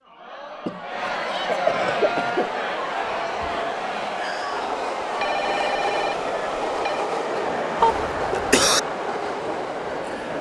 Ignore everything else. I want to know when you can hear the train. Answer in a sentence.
You can hear the train from 1.9 to 10.3 s.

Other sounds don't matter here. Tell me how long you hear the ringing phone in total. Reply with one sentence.
You can hear the ringing phone for 2 seconds altogether.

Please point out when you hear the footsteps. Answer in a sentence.
The footsteps can't be heard in this clip.